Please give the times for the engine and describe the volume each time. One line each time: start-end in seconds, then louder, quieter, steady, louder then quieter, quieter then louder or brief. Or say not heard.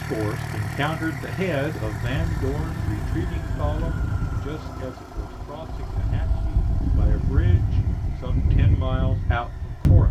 0.0-10.0 quieter.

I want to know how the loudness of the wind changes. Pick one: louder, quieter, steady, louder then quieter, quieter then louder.
louder.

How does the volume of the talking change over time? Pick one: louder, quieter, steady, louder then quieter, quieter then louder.
quieter then louder.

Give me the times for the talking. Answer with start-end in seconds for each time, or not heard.
0.0-10.0.